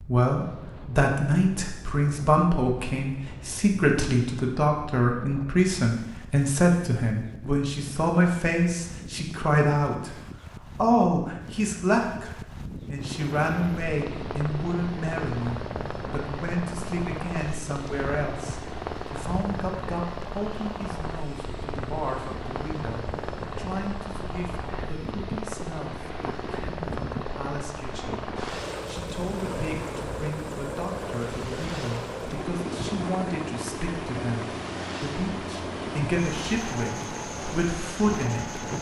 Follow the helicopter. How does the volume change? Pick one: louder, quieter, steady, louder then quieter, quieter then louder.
steady.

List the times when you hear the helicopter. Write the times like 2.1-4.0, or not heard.
12.9-38.7.